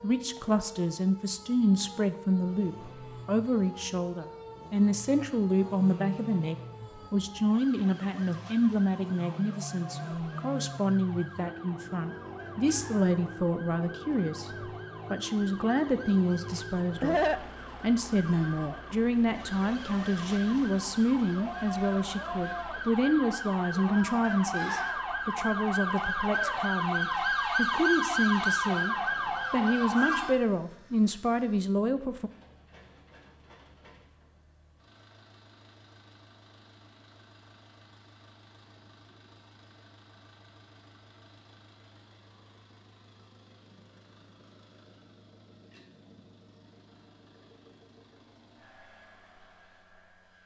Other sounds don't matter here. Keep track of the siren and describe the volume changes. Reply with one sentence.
The volume of the siren goes up.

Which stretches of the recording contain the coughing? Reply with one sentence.
The coughing can be heard from 16.5 to 17.4 s.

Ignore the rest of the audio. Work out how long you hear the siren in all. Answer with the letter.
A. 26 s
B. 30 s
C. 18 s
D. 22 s
B.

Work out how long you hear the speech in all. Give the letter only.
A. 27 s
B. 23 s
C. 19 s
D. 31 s
D.